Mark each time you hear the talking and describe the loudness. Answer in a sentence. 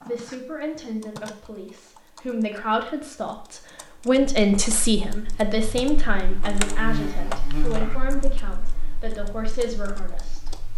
The talking can be heard from 0.0 to 10.5 s, getting louder then quieter.